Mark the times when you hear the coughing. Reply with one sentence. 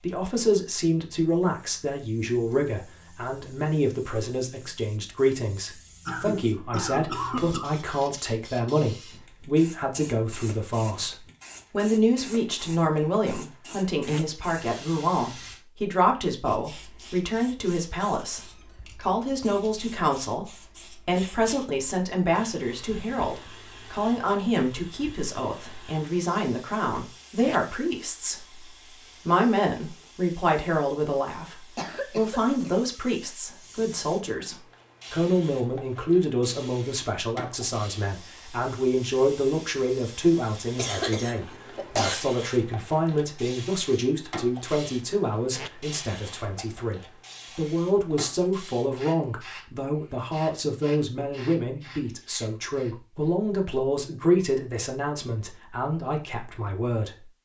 You can hear the coughing from 6.0 to 7.7 s, from 31.8 to 32.9 s and from 40.8 to 42.1 s.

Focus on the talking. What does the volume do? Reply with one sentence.
The volume of the talking stays about the same.